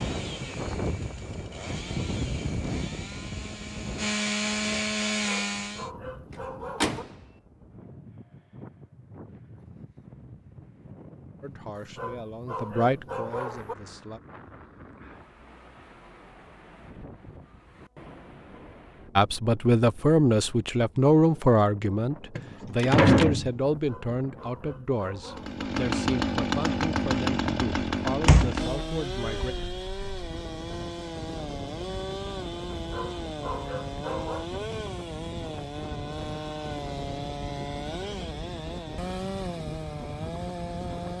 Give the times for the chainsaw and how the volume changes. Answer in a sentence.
The chainsaw can be heard from 0.0 to 5.9 s, getting louder; and from 25.2 to 41.1 s, getting quieter.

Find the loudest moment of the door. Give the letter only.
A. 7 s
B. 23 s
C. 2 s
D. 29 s
B.